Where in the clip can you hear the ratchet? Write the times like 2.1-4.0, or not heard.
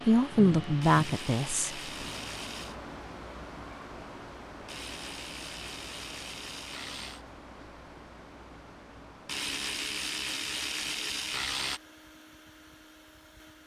0.8-2.8, 4.7-7.2, 9.2-11.8.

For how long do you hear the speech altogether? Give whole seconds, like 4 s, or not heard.
2 s.